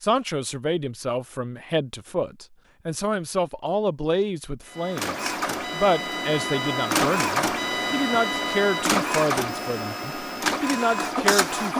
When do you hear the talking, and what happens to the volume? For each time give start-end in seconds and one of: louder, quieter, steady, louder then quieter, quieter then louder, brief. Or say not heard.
0.0-11.7 steady.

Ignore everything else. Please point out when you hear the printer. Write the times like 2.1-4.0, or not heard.
4.7-11.7.